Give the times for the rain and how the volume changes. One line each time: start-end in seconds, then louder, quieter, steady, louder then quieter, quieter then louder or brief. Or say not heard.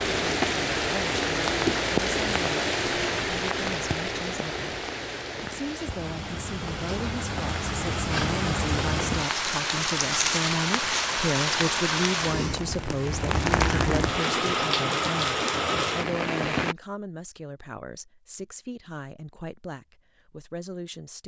0.0-16.8 quieter then louder.